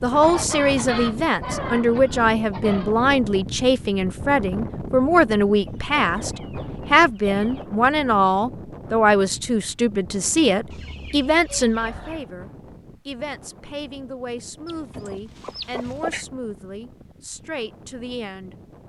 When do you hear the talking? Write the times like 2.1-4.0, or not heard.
0.0-18.6.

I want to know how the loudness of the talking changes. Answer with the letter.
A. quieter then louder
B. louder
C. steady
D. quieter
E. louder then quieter
D.